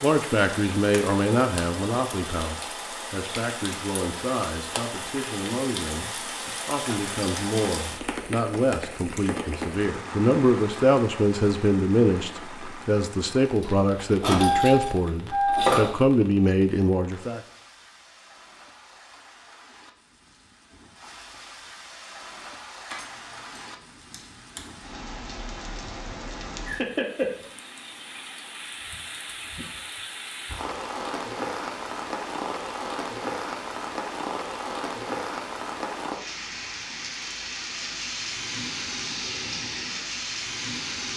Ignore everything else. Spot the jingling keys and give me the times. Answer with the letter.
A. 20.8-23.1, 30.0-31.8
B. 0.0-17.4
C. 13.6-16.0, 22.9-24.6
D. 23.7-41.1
C.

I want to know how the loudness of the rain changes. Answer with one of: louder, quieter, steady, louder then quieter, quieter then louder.
quieter then louder.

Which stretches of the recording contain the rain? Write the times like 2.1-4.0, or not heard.
0.0-41.1.